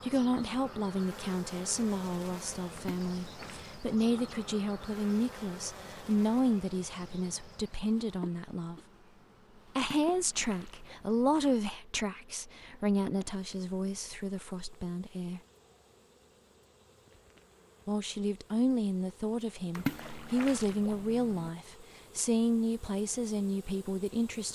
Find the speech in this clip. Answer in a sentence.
The speech can be heard from 0.0 to 8.8 s, from 9.8 to 15.4 s and from 17.9 to 24.5 s.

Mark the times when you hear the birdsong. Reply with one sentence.
You can't hear the birdsong here.